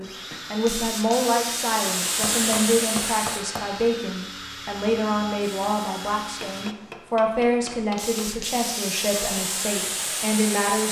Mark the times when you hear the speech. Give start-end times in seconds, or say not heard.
0.0-10.8.